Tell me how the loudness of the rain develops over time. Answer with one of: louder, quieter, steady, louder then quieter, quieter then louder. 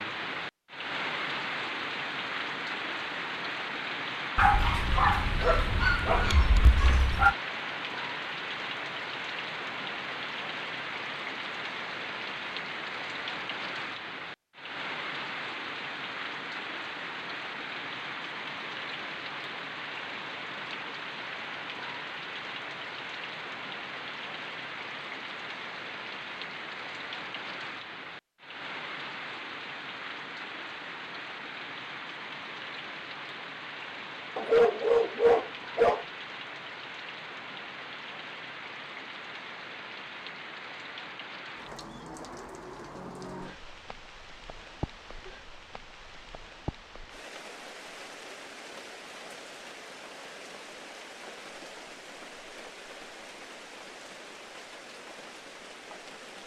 quieter.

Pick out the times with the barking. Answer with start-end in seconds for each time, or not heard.
4.3-7.3, 34.4-36.0.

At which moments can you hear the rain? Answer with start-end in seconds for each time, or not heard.
0.0-56.4.